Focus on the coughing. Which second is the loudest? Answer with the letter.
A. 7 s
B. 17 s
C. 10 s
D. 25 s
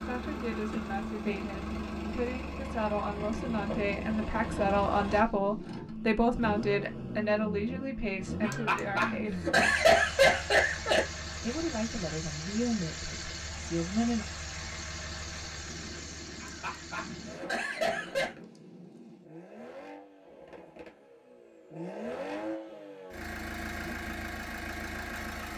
C.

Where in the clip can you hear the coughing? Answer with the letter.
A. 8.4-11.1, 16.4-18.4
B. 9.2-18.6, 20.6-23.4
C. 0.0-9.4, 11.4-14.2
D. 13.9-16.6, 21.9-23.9
A.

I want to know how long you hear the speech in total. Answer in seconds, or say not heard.
12 s.